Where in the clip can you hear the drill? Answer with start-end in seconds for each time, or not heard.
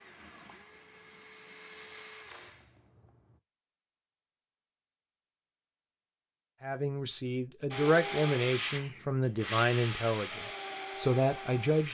0.0-3.4, 7.7-11.9.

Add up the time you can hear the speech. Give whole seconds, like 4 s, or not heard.
5 s.